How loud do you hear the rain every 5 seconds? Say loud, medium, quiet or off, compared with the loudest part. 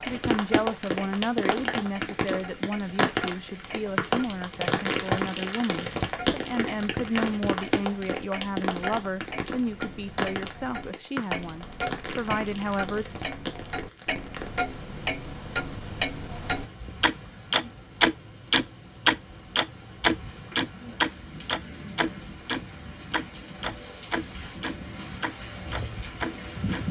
loud, loud, medium, quiet, quiet, medium.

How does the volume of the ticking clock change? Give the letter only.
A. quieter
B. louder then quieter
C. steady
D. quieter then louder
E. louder
E.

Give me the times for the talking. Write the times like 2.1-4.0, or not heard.
0.1-13.1.